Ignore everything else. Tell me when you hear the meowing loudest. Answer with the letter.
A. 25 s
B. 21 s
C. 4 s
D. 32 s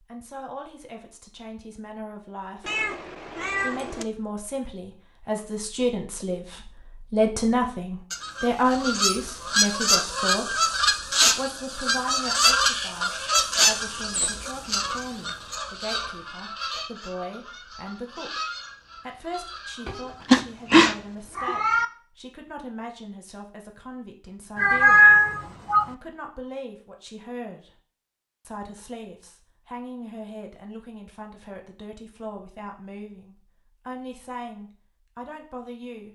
A.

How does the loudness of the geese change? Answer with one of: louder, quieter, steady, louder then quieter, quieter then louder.
quieter.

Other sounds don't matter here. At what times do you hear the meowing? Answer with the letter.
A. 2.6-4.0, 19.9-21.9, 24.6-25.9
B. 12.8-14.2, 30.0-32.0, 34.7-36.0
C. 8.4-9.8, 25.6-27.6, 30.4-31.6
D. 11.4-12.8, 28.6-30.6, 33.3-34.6
A.